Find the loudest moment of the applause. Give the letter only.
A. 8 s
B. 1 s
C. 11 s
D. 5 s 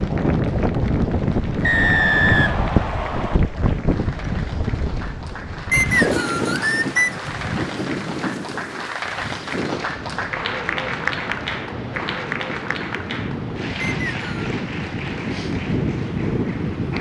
C.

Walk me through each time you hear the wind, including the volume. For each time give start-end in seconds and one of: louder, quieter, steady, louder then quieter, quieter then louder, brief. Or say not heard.
0.0-16.9 quieter then louder.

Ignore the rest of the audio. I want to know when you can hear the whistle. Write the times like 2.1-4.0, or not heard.
1.6-3.4, 5.7-7.2, 13.8-14.5.